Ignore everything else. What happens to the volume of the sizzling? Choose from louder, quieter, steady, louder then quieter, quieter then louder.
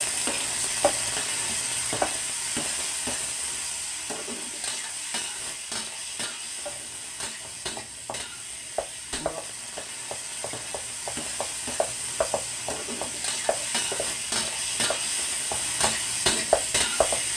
quieter then louder.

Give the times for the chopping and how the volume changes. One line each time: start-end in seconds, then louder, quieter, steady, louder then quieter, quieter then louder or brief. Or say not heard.
0.0-2.2 brief
6.7-17.2 louder.